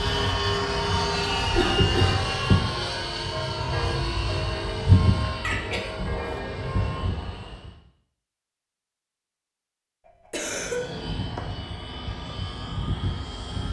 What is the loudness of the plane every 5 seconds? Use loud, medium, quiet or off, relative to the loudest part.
loud, medium, medium.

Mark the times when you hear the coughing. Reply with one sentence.
You can hear the coughing from 1.4 to 2.2 s, from 5.4 to 6.4 s and from 10.1 to 10.8 s.